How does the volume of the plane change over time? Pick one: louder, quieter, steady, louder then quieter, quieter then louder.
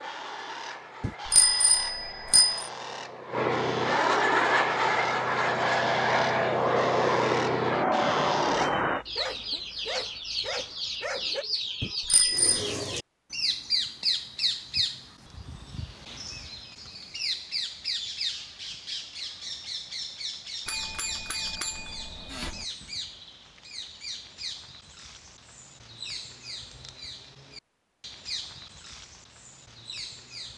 louder.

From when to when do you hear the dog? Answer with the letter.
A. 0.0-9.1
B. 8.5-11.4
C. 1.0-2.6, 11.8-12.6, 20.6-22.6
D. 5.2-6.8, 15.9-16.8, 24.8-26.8
B.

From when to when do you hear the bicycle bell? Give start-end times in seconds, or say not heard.
1.0-2.6, 11.8-12.6, 20.6-22.6.